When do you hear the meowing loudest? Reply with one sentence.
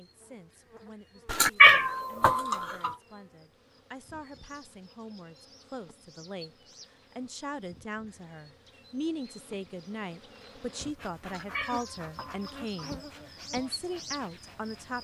The volume of the meowing peaks at 2 seconds.